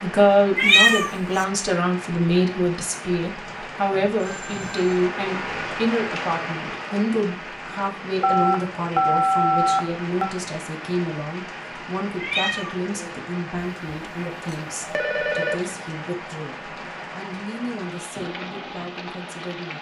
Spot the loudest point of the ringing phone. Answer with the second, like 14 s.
9 s.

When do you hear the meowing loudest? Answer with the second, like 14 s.
1 s.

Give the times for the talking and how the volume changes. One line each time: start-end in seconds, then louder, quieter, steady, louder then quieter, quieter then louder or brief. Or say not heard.
0.0-19.7 quieter.